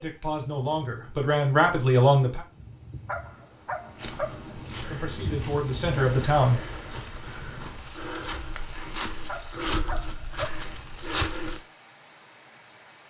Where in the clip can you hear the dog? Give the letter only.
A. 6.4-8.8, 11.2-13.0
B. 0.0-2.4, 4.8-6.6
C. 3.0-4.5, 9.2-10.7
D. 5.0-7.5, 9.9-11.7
C.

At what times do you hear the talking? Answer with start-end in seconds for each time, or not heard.
0.0-2.4, 4.8-6.6.